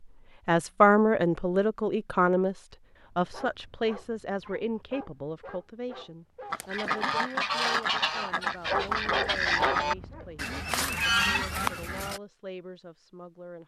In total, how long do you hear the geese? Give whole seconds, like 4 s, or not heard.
6 s.